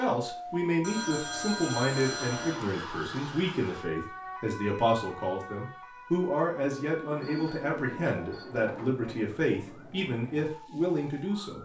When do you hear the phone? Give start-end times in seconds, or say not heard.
0.8-2.6, 7.2-8.4.